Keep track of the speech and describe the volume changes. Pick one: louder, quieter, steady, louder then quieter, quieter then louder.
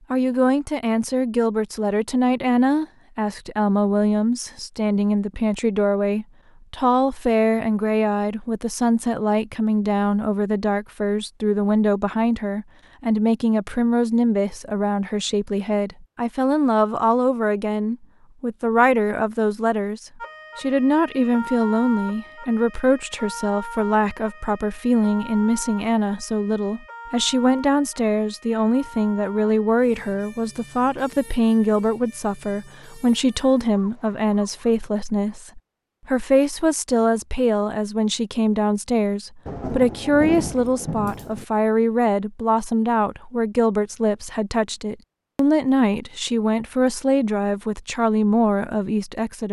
steady.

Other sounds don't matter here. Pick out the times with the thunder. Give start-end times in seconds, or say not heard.
39.5-41.5.